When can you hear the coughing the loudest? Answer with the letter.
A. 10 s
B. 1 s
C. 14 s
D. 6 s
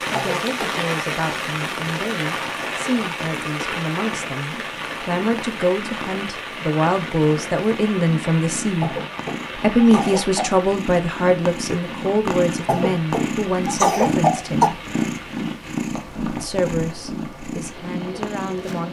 C.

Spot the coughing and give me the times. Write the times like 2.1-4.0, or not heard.
0.1-0.8, 8.8-10.6, 12.7-14.7.